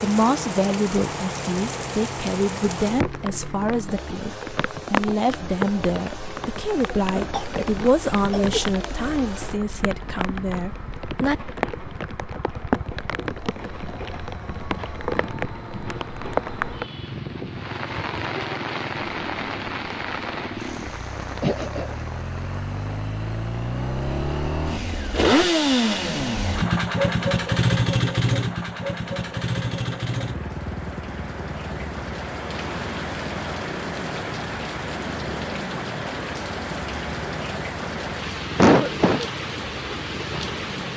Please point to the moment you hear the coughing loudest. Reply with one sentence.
The loudest moment of the coughing is at 39 seconds.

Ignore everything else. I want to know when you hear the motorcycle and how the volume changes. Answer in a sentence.
You can hear the motorcycle from 0.0 to 40.9 s, getting louder then quieter.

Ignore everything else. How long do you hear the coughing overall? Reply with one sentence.
You can hear the coughing for 3 seconds altogether.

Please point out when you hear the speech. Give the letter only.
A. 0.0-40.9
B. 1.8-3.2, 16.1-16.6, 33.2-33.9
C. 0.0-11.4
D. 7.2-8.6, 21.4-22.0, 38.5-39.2
C.